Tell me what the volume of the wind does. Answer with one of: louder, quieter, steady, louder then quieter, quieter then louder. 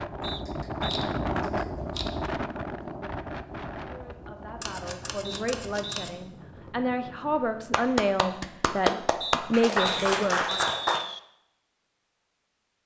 quieter.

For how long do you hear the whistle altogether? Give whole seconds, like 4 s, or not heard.
4 s.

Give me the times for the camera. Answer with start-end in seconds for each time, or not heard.
0.2-2.4, 4.6-6.1, 9.8-10.7.